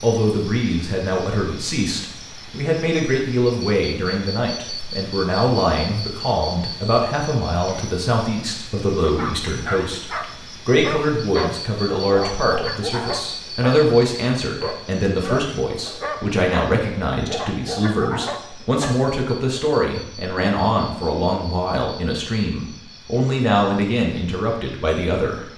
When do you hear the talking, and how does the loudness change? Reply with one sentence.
You can hear the talking from 0.0 to 25.4 s, at a steady volume.